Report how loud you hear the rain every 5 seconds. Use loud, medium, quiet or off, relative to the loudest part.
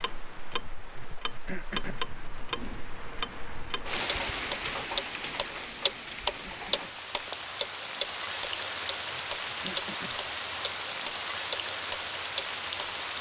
medium, loud, loud.